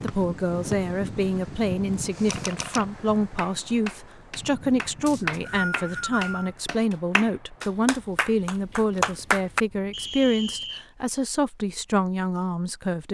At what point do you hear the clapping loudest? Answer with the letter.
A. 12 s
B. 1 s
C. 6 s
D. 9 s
D.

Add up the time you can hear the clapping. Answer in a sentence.
The clapping can be heard for 6 seconds in total.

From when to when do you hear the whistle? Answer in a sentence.
You can hear the whistle from 0.1 to 0.8 s, from 5.0 to 6.5 s and from 9.9 to 10.8 s.